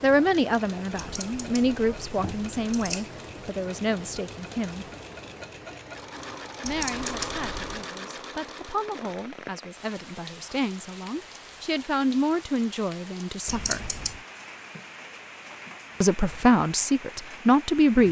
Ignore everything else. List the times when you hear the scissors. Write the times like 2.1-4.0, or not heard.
0.9-3.1, 6.7-7.7, 13.4-14.2.